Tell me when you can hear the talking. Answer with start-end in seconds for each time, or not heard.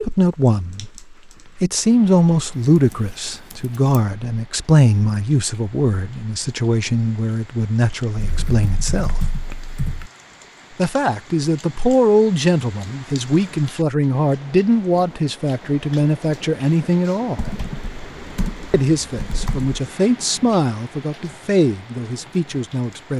0.0-9.3, 10.8-17.5, 18.7-23.1.